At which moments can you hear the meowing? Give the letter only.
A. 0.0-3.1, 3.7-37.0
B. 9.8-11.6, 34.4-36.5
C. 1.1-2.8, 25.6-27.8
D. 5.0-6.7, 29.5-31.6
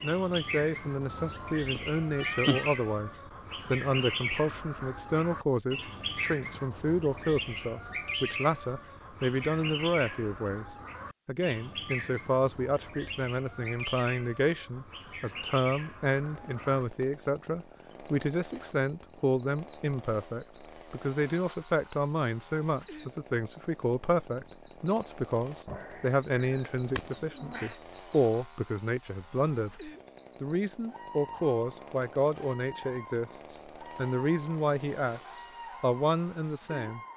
C.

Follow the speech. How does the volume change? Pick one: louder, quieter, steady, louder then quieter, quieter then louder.
steady.